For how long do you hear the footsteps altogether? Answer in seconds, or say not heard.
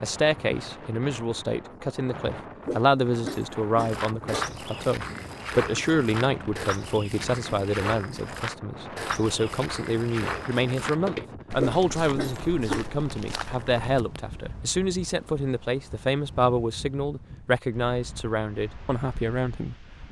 10 s.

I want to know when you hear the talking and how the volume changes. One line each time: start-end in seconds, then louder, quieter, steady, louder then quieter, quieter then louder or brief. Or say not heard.
0.0-19.9 steady.